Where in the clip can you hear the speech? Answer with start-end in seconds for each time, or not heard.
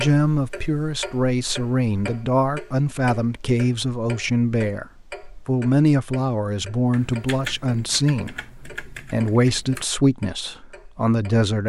0.0-4.8, 5.5-11.6.